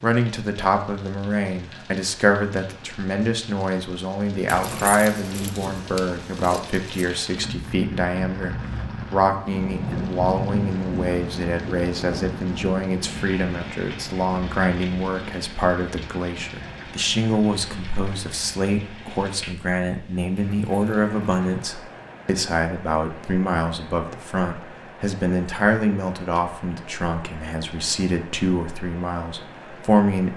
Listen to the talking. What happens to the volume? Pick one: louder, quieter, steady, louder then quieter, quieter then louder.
steady.